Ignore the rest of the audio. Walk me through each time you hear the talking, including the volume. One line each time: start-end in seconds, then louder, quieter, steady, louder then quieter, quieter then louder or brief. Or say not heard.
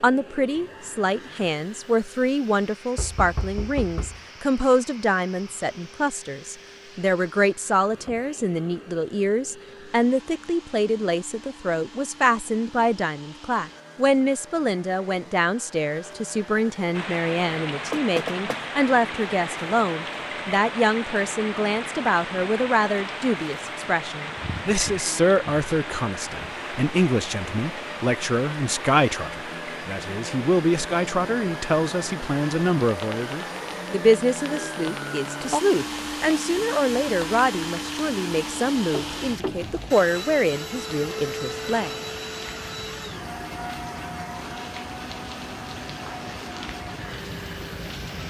0.0-42.0 steady.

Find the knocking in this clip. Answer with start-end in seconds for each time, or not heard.
3.0-4.2, 17.9-18.6, 38.9-39.9.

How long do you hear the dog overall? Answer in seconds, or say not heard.
not heard.